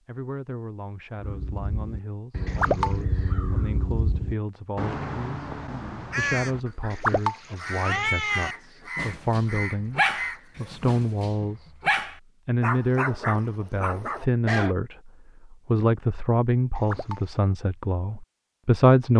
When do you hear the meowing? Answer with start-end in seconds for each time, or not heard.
2.5-3.0, 6.9-8.6, 16.8-17.2.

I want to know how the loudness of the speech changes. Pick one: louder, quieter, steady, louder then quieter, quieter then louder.
louder.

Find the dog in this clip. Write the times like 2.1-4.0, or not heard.
8.9-14.8.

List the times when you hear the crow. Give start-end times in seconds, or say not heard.
1.1-10.5.